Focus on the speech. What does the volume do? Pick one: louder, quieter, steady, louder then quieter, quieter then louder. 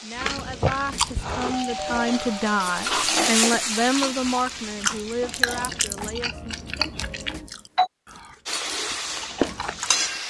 louder then quieter.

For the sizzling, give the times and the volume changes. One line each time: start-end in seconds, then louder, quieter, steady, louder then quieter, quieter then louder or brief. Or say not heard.
0.0-5.8 louder then quieter
8.4-10.2 brief.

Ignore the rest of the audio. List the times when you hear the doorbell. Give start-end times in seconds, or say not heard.
1.6-3.1, 6.8-7.9.